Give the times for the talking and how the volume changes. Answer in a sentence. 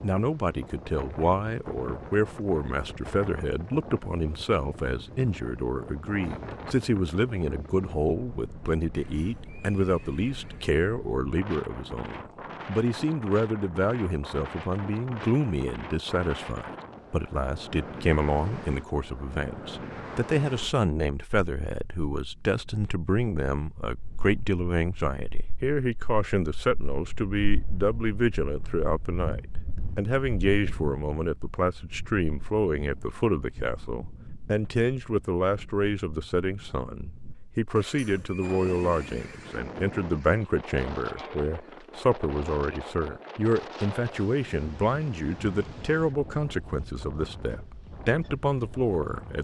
You can hear the talking from 0.0 to 49.3 s, at a steady volume.